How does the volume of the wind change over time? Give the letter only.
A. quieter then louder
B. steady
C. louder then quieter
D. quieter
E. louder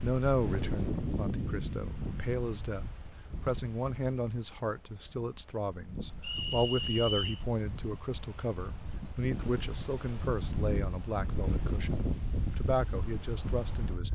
A.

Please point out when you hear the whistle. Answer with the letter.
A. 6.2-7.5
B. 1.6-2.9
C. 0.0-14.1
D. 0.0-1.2
A.